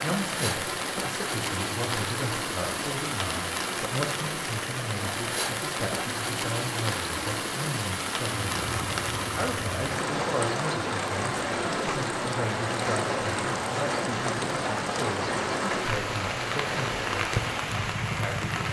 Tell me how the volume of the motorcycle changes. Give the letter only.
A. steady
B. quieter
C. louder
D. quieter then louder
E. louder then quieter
A.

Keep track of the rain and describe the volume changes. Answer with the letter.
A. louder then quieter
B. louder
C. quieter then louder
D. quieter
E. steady
E.